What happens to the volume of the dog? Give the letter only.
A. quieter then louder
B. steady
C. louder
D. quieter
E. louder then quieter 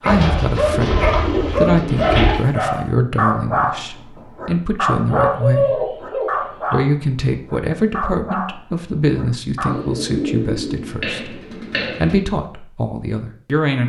D.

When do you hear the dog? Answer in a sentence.
The dog can be heard from 0.0 to 9.8 s.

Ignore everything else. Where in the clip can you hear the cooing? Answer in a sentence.
The cooing can be heard from 0.1 to 2.4 s, from 5.1 to 6.8 s and from 9.7 to 12.2 s.